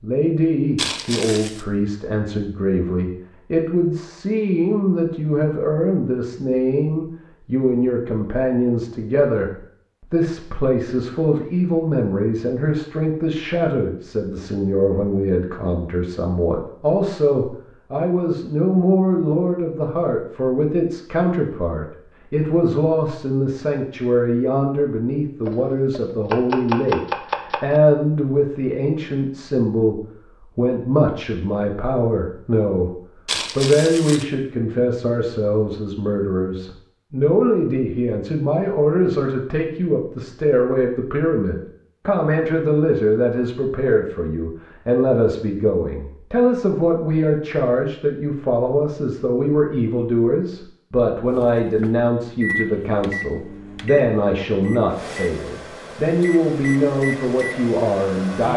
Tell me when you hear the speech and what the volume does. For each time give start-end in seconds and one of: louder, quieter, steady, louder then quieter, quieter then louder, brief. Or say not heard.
0.0-9.5 steady
10.1-33.0 steady
33.5-58.5 steady.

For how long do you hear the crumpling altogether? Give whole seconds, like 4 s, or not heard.
2 s.